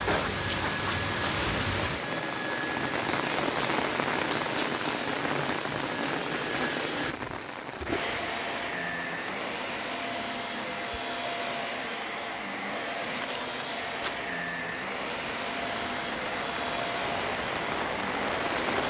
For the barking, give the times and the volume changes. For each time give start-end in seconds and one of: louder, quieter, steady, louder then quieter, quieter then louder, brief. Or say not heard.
not heard.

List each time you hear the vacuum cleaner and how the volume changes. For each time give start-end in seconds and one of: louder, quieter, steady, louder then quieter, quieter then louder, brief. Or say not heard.
0.0-18.8 steady.